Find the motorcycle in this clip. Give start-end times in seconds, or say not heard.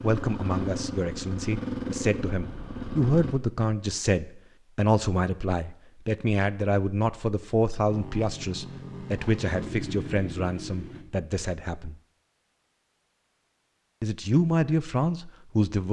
0.0-3.4, 7.8-11.1.